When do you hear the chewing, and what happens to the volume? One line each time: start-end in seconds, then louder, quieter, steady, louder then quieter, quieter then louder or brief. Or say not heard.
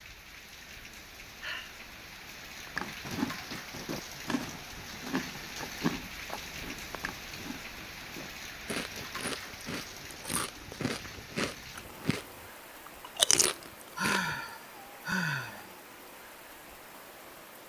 2.8-12.2 quieter then louder
12.8-14.3 brief.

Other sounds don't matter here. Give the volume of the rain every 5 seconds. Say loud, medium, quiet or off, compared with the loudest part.
loud, loud, medium, medium.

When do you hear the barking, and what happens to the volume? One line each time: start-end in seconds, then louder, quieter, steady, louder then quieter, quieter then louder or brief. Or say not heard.
not heard.